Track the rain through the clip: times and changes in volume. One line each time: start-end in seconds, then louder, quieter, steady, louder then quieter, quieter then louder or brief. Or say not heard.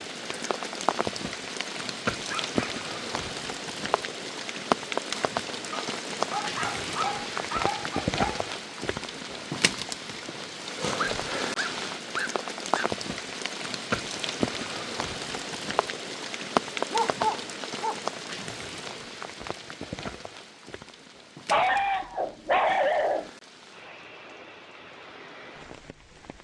0.0-26.3 quieter.